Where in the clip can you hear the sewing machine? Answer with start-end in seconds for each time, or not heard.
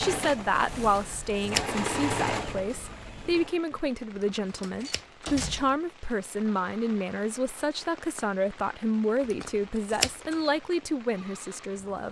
0.0-3.5.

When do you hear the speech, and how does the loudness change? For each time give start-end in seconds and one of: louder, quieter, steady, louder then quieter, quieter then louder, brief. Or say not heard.
0.0-12.0 steady.